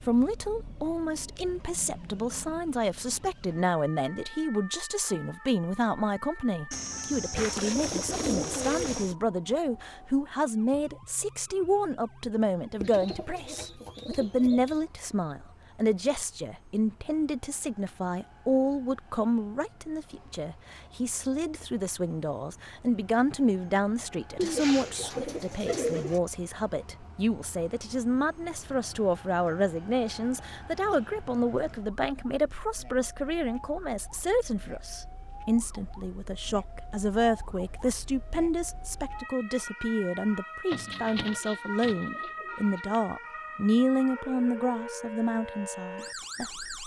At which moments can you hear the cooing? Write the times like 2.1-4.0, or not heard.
6.7-9.2, 12.8-14.8, 24.4-26.2, 40.7-43.0.